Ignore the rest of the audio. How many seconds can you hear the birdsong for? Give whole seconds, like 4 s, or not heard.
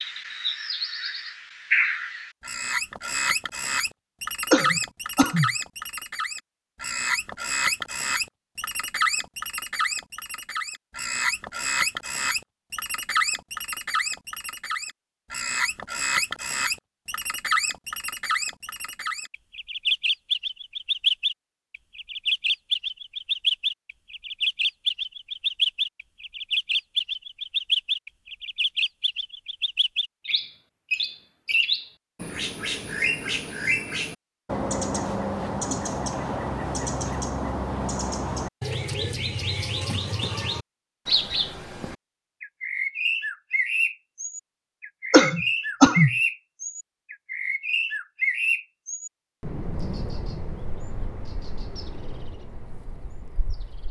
54 s.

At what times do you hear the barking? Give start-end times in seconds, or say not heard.
not heard.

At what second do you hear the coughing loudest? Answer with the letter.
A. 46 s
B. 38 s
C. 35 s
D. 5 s
A.